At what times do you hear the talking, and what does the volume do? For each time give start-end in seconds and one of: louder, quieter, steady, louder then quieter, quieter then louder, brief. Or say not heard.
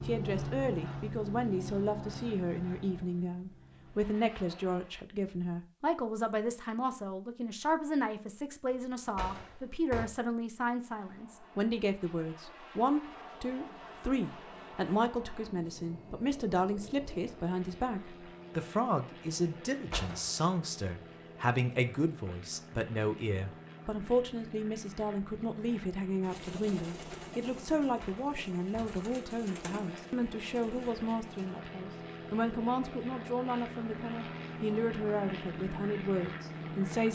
0.0-37.0 steady.